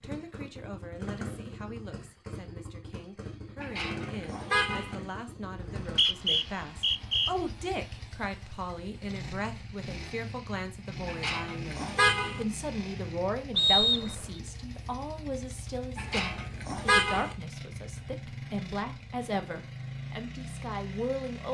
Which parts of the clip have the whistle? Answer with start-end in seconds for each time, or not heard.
5.5-7.3, 13.6-14.2.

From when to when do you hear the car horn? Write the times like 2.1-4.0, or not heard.
3.6-5.0, 11.1-12.4, 15.9-17.4.